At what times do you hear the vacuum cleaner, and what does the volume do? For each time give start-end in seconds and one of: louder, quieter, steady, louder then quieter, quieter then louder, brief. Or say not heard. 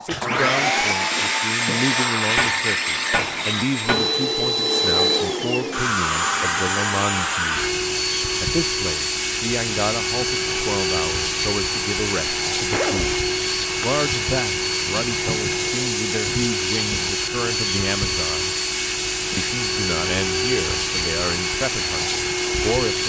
0.0-23.0 steady.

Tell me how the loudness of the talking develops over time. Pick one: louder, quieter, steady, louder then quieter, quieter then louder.
steady.